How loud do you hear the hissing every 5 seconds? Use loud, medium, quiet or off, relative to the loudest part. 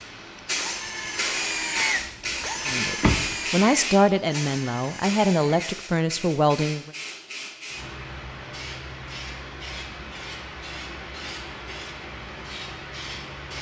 loud, medium, medium.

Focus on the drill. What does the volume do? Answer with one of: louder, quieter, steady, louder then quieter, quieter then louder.
quieter.